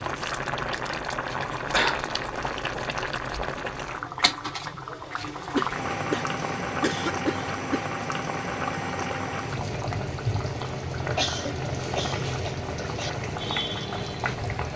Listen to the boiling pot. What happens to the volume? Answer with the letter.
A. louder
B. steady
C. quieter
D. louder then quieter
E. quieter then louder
B.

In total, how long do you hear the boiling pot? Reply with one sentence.
The boiling pot can be heard for 15 seconds in total.